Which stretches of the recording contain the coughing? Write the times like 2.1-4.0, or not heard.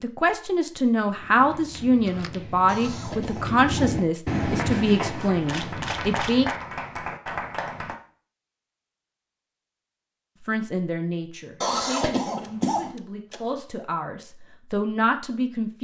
2.6-4.0, 11.6-12.9.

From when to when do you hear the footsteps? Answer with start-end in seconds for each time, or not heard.
1.0-6.6.